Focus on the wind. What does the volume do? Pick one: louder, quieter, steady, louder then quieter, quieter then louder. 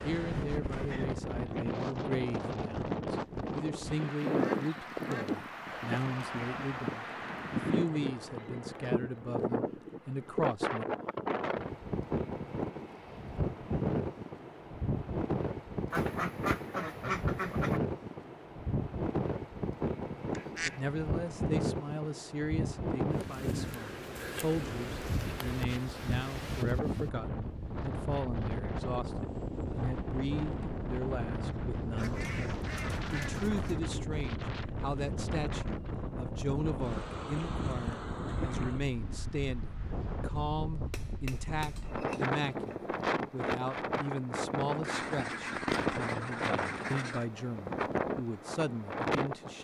steady.